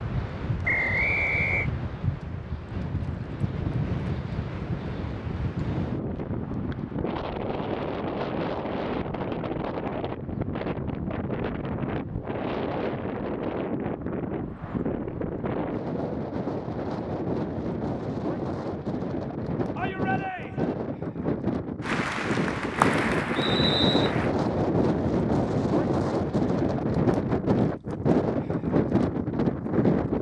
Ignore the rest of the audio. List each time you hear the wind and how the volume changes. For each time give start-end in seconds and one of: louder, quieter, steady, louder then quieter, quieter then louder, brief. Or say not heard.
0.0-30.1 louder.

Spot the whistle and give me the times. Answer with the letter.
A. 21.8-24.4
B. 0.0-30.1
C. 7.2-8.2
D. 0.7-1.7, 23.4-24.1
D.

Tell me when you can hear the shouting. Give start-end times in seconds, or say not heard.
19.8-20.8.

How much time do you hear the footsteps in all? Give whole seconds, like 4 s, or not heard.
not heard.